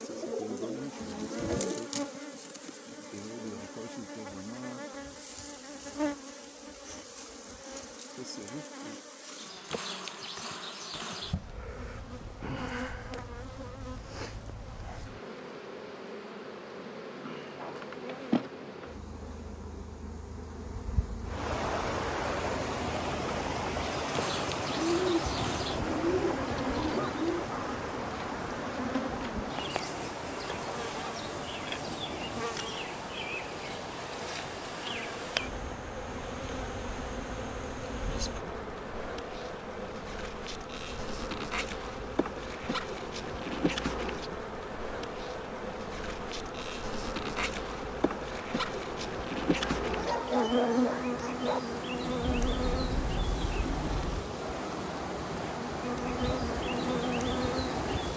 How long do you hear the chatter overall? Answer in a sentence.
You can't hear the chatter here.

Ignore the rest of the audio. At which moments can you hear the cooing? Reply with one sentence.
The cooing can be heard from 0.0 to 1.9 s, from 24.8 to 27.4 s and from 52.5 to 54.2 s.